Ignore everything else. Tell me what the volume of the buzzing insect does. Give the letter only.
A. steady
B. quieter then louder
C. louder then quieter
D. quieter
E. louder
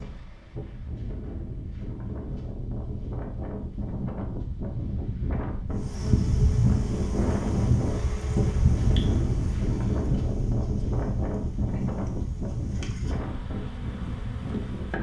D.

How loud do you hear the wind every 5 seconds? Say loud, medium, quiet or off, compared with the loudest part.
medium, loud, loud.